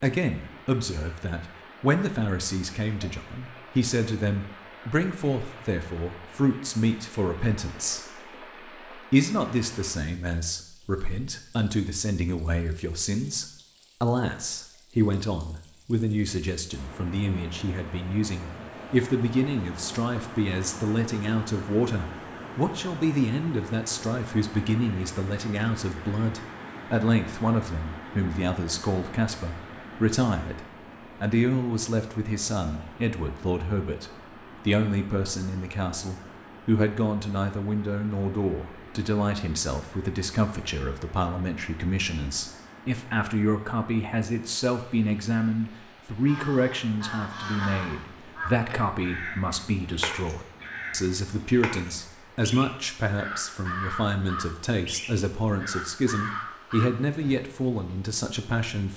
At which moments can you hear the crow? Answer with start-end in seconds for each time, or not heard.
46.2-57.4.